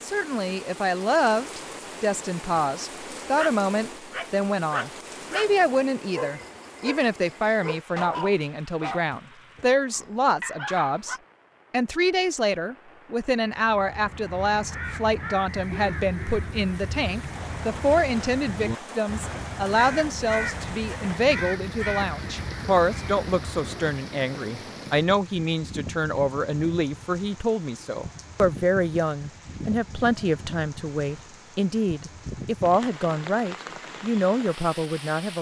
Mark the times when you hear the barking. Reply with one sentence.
You can hear the barking from 3.4 to 11.2 s.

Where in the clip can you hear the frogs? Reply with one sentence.
You can't hear the frogs here.